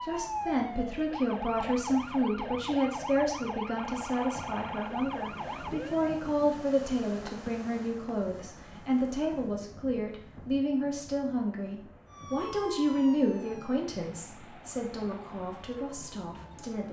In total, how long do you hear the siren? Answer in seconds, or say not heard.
11 s.